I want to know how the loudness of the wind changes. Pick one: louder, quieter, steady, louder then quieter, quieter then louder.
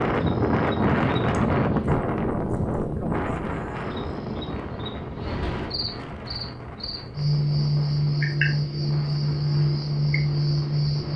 quieter.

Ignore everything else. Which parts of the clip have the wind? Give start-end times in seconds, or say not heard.
0.0-11.1.